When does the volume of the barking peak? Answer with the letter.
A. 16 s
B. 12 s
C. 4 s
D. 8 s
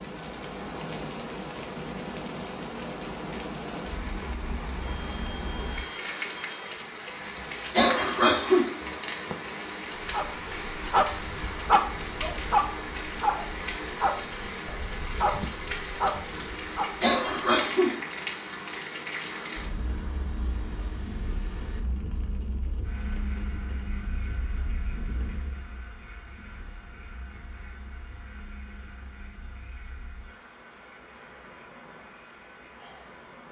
B.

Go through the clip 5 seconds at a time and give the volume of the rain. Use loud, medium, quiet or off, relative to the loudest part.
loud, loud, loud, loud, medium, quiet, quiet.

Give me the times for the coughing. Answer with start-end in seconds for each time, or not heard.
7.7-8.7, 17.0-17.9.